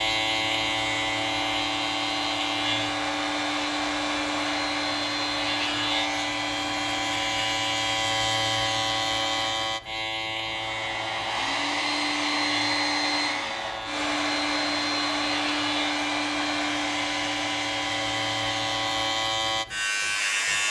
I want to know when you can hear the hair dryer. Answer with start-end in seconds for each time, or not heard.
0.0-20.6.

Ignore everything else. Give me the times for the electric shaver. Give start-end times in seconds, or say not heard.
0.0-20.6.